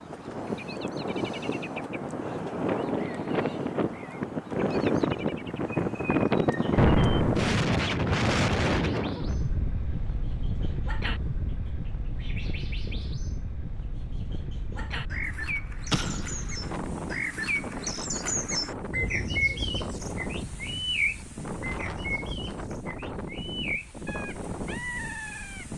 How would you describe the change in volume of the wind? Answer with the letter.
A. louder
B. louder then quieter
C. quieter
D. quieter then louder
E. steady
C.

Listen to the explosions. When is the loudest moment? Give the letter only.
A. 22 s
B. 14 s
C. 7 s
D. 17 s
C.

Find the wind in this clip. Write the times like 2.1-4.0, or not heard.
0.0-25.7.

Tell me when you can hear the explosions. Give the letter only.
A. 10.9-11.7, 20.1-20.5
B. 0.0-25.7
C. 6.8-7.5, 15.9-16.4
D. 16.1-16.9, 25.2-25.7
C.